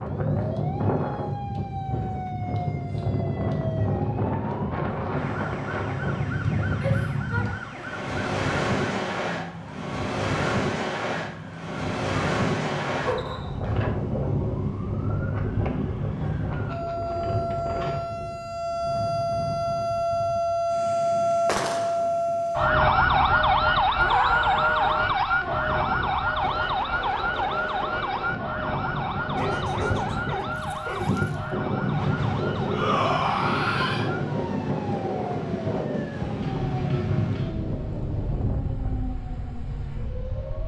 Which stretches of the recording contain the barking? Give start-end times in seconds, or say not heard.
13.1-13.8, 29.4-31.4.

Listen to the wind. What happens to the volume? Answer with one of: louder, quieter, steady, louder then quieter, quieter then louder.
quieter then louder.